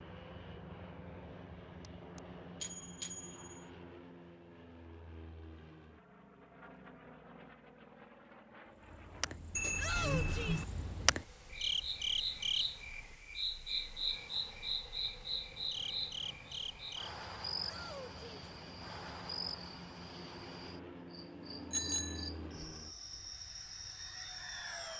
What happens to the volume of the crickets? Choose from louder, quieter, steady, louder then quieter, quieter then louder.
quieter.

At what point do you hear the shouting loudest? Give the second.
10 s.